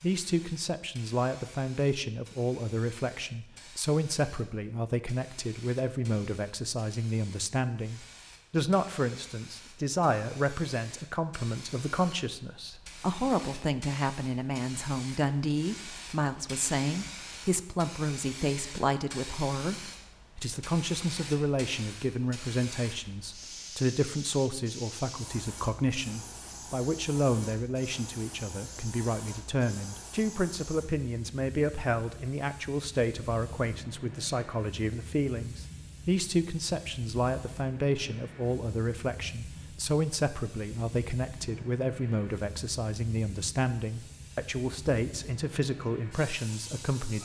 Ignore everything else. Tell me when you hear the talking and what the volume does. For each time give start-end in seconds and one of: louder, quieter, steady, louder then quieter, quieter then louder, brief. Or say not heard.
0.0-47.2 steady.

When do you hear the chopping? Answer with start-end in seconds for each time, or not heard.
not heard.